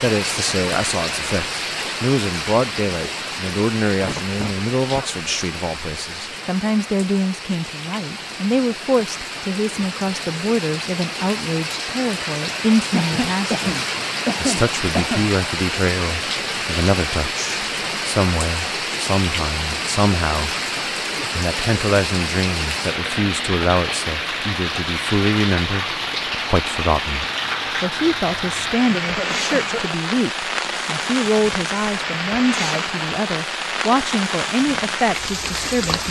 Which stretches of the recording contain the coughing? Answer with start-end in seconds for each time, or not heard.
4.0-5.1, 12.9-15.3, 28.9-29.9.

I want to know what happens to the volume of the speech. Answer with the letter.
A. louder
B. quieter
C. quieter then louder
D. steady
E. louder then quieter
D.